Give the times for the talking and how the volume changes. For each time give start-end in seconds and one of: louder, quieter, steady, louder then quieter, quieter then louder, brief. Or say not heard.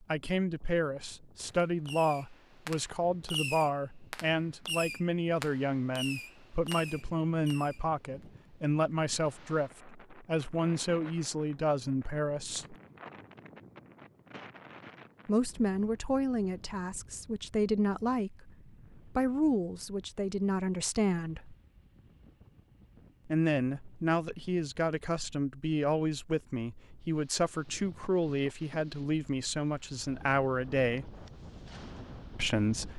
0.0-12.8 steady
15.2-21.6 steady
23.2-31.2 steady
32.4-32.9 brief.